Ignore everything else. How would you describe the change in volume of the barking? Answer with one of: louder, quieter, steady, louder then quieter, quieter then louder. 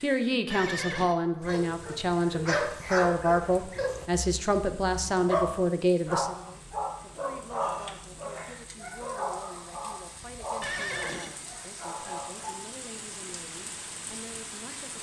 quieter.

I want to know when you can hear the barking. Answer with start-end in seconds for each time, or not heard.
1.4-12.6.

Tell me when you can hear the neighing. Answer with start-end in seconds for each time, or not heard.
0.5-1.1, 10.6-11.3.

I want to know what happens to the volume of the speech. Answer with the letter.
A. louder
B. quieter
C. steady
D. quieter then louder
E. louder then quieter
B.